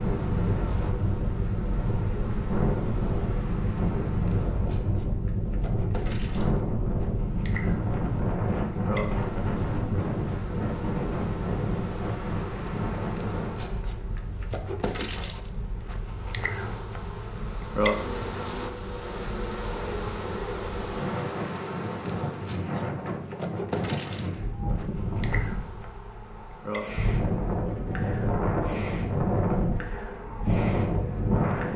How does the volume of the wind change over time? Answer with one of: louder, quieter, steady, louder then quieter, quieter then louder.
quieter then louder.